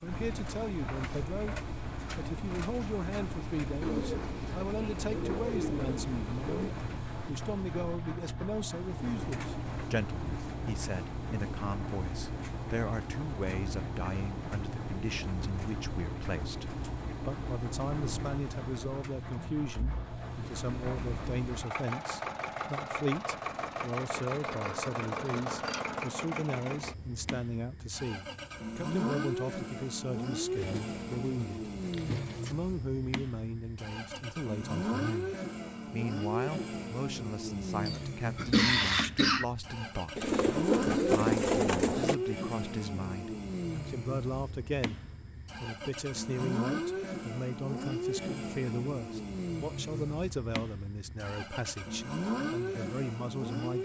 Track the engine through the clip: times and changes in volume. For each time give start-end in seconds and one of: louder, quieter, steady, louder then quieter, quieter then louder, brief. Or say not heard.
0.0-53.8 steady.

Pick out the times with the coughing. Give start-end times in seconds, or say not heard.
37.9-39.5.